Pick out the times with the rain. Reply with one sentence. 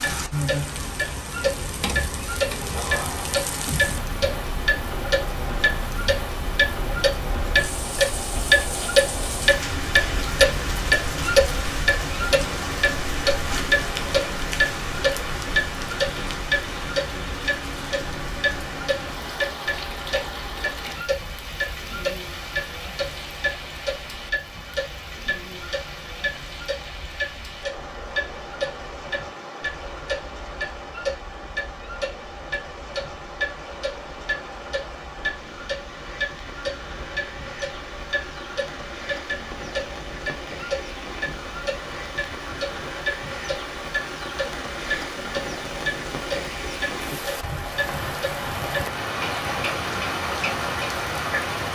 You can hear the rain from 0.0 to 51.7 s.